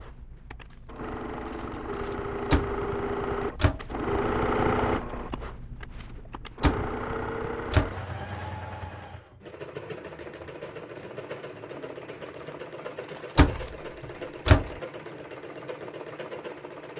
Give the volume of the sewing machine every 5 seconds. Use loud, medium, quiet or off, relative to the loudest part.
loud, medium, medium, medium.